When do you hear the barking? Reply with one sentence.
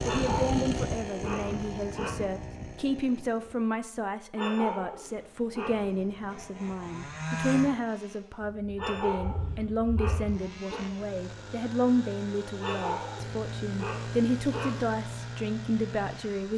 The barking can be heard from 0.0 to 2.1 s, from 4.3 to 6.0 s, from 8.8 to 10.8 s and from 12.6 to 14.8 s.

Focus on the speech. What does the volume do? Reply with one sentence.
The loudness of the speech stays about the same.